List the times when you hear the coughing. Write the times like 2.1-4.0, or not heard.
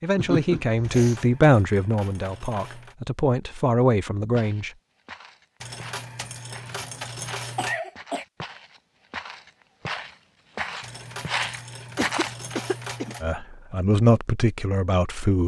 0.1-1.4, 7.5-8.2, 11.9-13.2.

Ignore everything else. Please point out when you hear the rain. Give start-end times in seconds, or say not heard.
not heard.